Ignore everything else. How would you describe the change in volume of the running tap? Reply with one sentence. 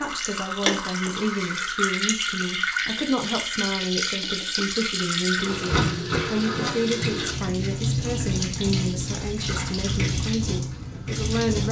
The volume of the running tap stays about the same.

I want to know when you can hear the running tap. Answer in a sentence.
The running tap can be heard from 0.0 to 11.6 s.